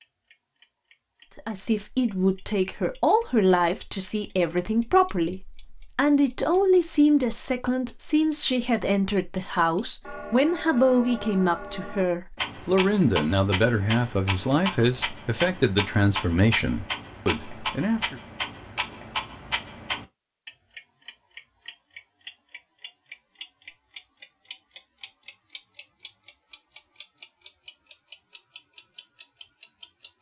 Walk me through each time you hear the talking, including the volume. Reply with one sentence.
The talking can be heard from 1.4 to 18.2 s, at a steady volume.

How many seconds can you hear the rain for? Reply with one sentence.
The rain can't be heard in this clip.